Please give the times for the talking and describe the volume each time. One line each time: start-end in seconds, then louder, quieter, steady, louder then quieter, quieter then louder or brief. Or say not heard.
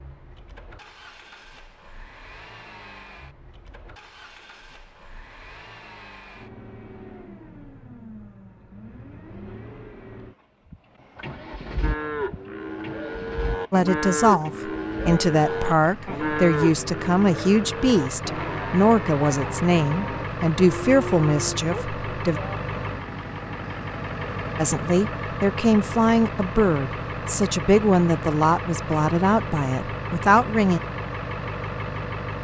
13.7-22.4 steady
24.6-30.8 steady.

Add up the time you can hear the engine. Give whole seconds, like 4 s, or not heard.
32 s.